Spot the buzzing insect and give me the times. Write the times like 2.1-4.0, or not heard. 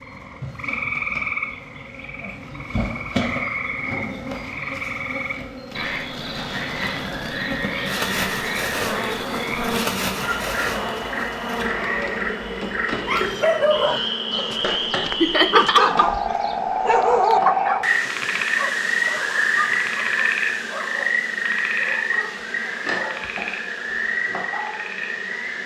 0.0-25.6.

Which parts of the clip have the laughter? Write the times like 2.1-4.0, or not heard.
15.2-16.4.